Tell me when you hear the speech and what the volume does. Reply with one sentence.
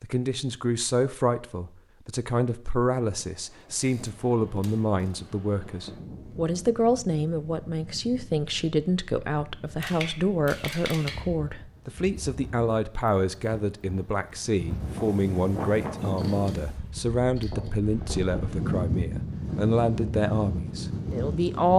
You can hear the speech from 0.0 to 21.7 s, at a steady volume.